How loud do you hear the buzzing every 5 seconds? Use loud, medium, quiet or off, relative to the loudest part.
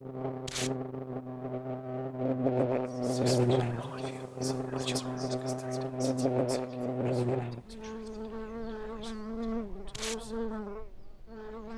loud, loud, medium.